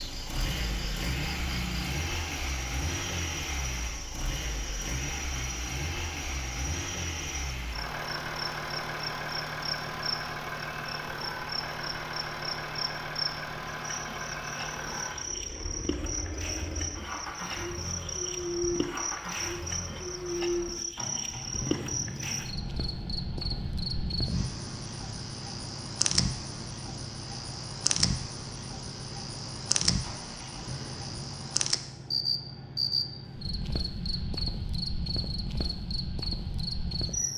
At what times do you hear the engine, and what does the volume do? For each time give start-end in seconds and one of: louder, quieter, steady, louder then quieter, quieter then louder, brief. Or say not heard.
0.0-37.3 quieter.